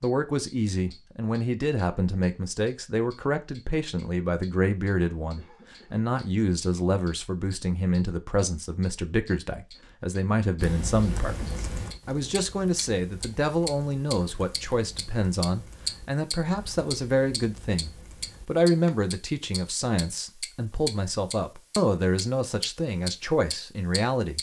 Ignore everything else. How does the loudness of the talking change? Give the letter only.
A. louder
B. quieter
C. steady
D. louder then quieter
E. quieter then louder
C.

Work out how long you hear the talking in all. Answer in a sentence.
You can hear the talking for 24 seconds altogether.